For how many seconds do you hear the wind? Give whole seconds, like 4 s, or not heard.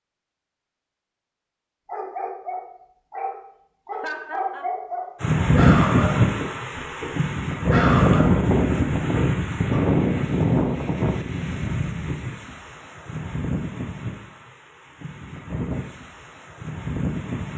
12 s.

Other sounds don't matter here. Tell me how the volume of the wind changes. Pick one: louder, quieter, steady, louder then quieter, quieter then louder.
quieter.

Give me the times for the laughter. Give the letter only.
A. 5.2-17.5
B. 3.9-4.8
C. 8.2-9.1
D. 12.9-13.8
B.